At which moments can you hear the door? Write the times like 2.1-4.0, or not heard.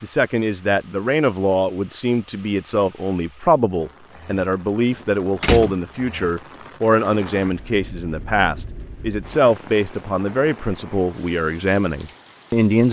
4.9-5.8.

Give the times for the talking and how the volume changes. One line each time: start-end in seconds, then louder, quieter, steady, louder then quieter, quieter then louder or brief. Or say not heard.
0.0-12.8 steady.